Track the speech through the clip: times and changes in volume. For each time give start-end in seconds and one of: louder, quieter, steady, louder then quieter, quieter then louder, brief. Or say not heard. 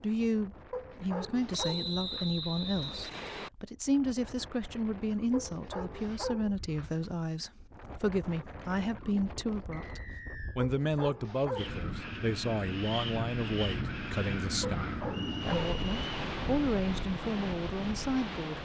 0.0-18.5 steady.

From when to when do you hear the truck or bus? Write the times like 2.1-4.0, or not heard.
not heard.